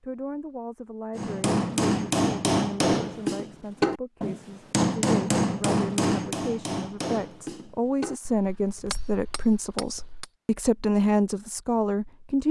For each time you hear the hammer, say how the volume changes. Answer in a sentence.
The hammer can be heard from 1.1 to 10.3 s, getting quieter.